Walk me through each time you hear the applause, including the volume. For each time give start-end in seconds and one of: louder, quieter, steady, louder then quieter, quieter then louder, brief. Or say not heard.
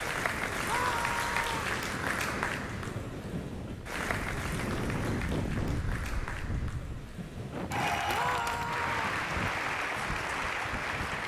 0.0-11.2 quieter then louder.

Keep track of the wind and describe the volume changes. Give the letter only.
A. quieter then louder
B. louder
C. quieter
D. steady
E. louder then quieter
E.